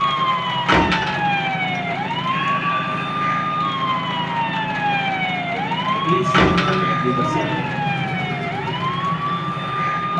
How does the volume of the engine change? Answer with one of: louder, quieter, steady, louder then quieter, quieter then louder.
steady.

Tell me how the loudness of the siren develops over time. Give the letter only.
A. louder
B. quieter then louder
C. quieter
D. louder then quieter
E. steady
E.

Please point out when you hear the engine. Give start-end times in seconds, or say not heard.
0.0-10.1.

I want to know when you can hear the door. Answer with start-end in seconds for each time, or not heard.
0.7-1.4, 6.3-7.0.